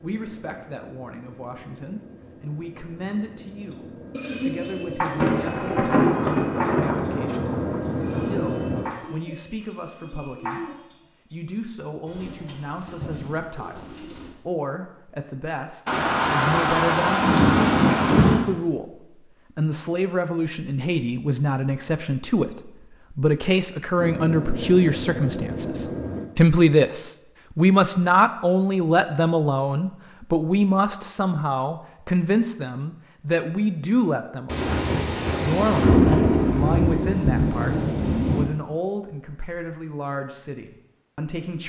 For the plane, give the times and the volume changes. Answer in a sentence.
You can hear the plane from 0.0 to 8.8 s, getting louder; and briefly from 23.9 to 26.2 s.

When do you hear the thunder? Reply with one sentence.
The thunder can be heard from 5.2 to 8.9 s, from 15.8 to 18.4 s and from 34.5 to 38.5 s.